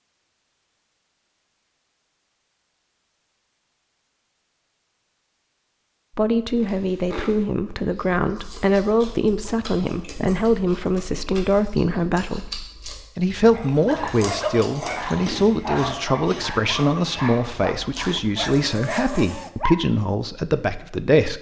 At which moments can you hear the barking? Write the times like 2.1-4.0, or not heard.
13.5-19.8.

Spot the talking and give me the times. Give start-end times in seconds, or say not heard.
6.2-12.4, 13.2-21.3.